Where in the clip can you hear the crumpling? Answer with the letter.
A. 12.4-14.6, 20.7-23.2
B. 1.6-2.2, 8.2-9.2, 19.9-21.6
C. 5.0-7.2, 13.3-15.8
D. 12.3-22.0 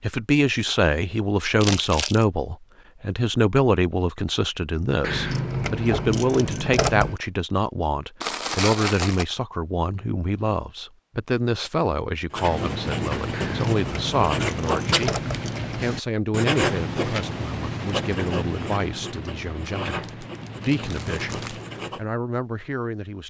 B.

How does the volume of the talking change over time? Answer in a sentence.
The loudness of the talking goes down.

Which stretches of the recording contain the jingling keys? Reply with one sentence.
You can hear the jingling keys from 5.0 to 7.2 s and from 13.3 to 15.8 s.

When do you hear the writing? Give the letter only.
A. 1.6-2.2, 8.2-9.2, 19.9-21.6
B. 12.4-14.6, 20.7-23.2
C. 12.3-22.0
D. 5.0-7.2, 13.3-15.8
C.